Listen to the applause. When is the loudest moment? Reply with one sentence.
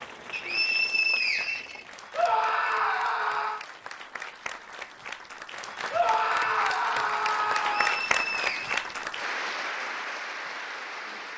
The volume of the applause peaks at 8 seconds.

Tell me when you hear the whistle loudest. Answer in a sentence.
The volume of the whistle peaks at 1 second.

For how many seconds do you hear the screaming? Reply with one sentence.
The screaming can be heard for 4 seconds in total.